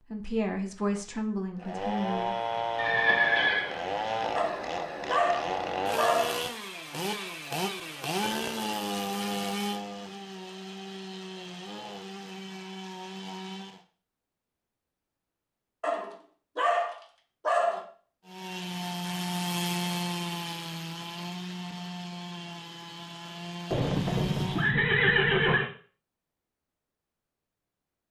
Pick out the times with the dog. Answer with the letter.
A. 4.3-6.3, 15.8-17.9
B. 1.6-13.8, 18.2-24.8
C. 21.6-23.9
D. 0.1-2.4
A.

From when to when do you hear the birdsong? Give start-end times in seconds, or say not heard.
not heard.